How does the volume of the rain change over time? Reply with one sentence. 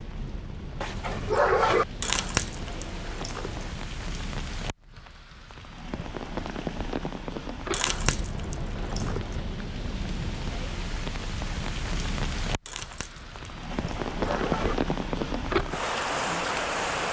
The volume of the rain goes up.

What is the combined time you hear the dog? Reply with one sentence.
You can hear the dog for 2 seconds altogether.